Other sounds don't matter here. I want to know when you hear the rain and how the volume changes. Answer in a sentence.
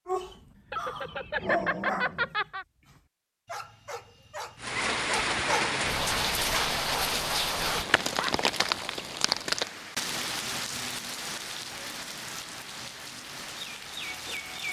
The rain can be heard from 4.6 to 14.6 s, getting quieter.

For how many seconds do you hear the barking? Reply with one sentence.
The barking can be heard for 8 seconds in total.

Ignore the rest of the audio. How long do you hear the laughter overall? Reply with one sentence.
The laughter can be heard for 2 seconds in total.